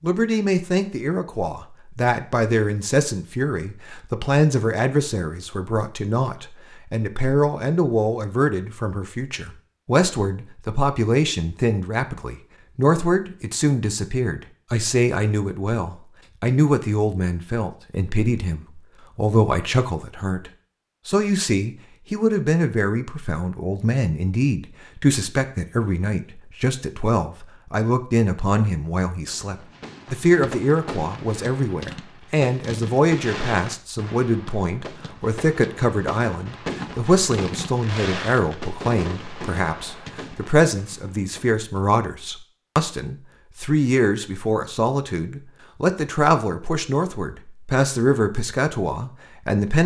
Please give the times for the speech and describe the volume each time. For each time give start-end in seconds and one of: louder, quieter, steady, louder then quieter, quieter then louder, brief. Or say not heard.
0.0-49.8 steady.